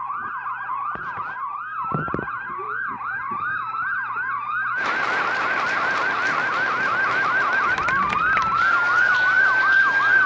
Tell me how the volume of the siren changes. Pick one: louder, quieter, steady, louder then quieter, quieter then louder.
louder.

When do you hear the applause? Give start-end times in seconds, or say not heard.
4.8-10.2.